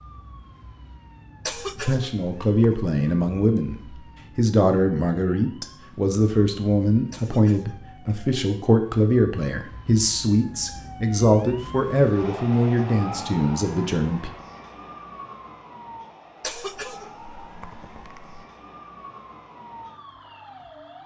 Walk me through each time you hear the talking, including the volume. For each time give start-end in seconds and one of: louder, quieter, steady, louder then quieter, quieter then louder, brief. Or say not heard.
1.8-14.3 steady.